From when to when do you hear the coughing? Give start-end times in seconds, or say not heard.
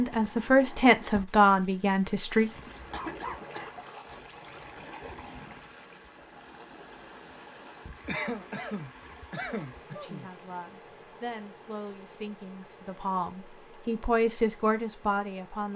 2.9-4.2, 8.1-10.3.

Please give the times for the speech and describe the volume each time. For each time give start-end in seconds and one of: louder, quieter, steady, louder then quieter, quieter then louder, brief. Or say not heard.
0.0-2.5 brief
9.9-15.7 louder.